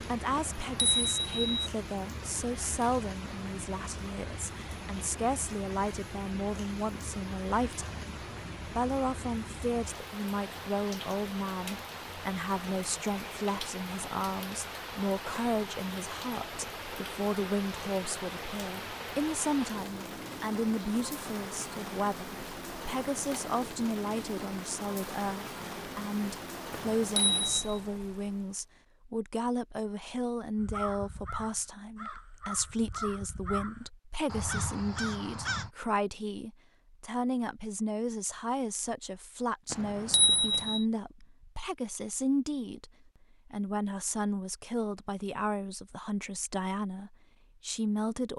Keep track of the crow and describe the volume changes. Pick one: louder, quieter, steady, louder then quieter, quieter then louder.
louder.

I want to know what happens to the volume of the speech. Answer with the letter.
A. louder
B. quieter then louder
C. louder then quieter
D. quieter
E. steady
E.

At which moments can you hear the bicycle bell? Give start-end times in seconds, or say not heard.
0.3-1.7, 26.7-27.8, 39.7-40.9.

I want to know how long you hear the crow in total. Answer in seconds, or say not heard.
5 s.